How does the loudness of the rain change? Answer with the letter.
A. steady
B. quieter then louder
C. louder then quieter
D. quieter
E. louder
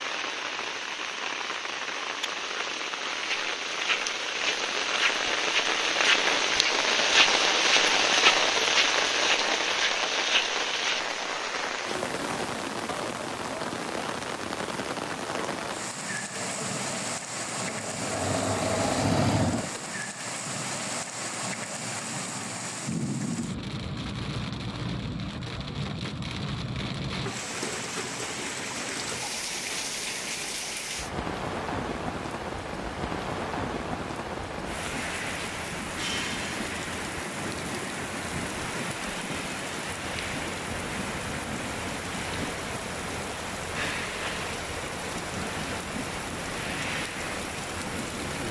D.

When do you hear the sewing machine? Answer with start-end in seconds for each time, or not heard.
16.3-19.9.